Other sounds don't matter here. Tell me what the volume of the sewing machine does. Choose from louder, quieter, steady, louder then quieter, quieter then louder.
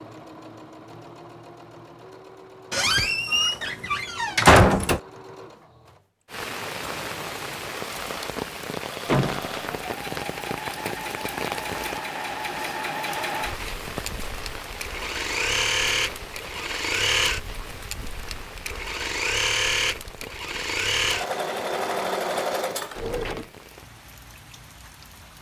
louder.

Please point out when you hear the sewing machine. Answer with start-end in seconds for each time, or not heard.
0.0-23.4.